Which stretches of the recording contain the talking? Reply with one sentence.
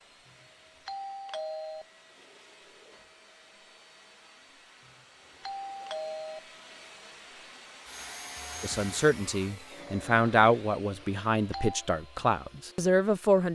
The talking can be heard from 8.6 to 13.4 s.